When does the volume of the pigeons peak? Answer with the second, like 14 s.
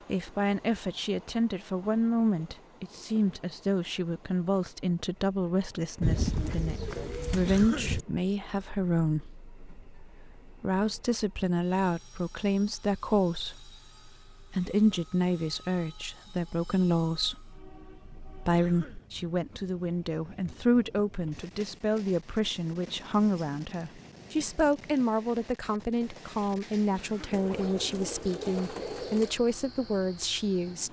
6 s.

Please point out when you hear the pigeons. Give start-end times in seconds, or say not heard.
6.0-8.1, 27.3-29.4.